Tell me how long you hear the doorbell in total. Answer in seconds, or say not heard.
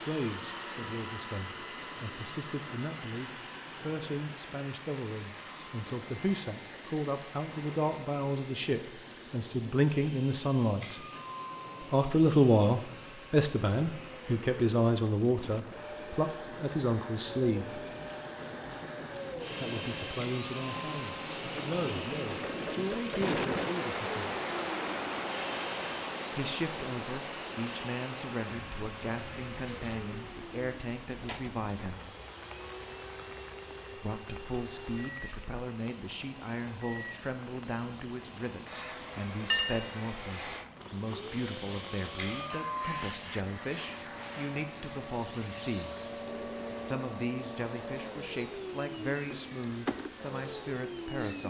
3 s.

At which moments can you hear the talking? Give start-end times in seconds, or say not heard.
0.0-11.0, 11.8-17.9, 19.6-24.3, 26.3-32.0, 34.0-46.1, 46.9-51.4.